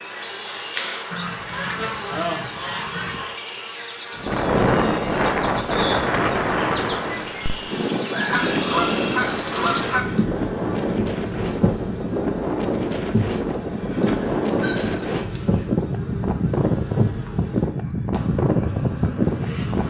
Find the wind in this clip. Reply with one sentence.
The wind can be heard from 4.2 to 19.8 s.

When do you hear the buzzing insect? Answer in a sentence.
You can hear the buzzing insect from 0.0 to 19.8 s.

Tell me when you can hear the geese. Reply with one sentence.
The geese can be heard from 1.1 to 3.4 s, from 8.3 to 10.1 s and from 14.1 to 15.7 s.